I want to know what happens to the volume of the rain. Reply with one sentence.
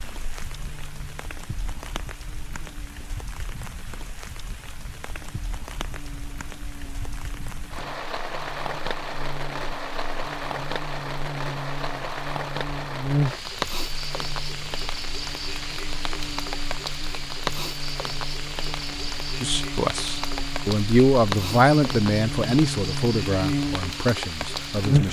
The loudness of the rain goes up.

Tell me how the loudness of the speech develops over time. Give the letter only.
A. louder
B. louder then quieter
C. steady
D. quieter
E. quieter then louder
B.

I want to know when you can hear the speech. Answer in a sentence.
The speech can be heard from 19.4 to 25.0 s.